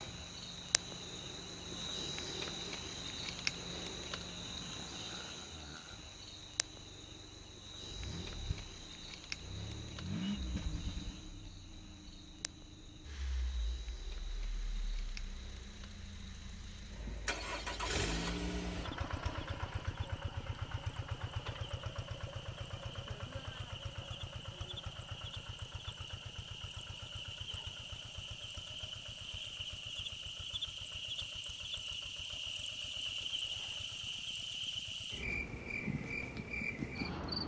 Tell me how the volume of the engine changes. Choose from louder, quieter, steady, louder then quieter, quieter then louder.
louder then quieter.